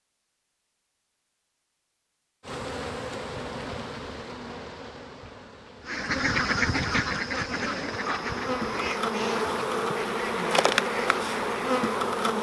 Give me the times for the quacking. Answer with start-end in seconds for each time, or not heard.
5.8-11.8.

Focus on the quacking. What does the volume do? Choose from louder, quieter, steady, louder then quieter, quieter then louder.
quieter.